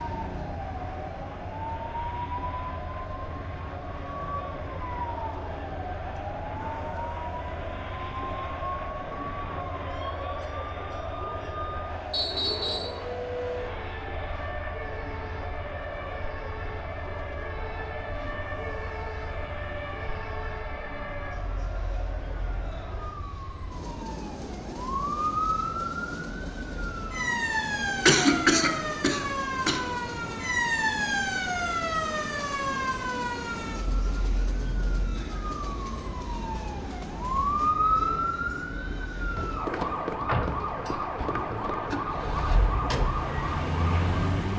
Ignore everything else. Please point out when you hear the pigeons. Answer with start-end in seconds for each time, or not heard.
not heard.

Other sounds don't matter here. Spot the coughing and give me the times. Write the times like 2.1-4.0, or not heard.
28.1-29.9.